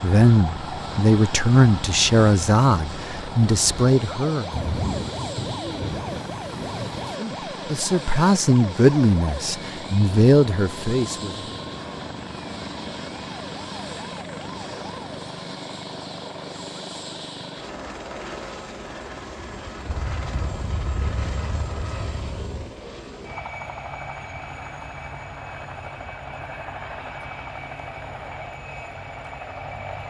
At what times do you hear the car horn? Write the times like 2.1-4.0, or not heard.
not heard.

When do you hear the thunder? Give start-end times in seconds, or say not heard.
4.5-7.2, 19.9-22.8.